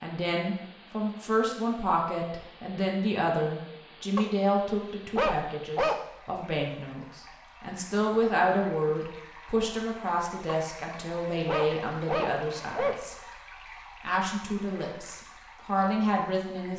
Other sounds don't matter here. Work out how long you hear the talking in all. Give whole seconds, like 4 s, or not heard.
16 s.